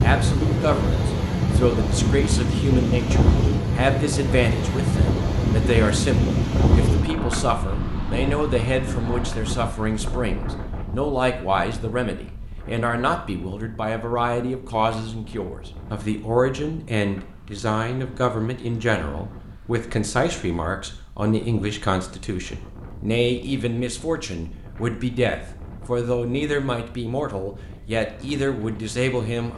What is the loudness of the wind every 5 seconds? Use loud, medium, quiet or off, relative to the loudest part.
loud, loud, quiet, quiet, quiet, quiet.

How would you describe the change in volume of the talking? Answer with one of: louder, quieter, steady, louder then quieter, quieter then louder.
steady.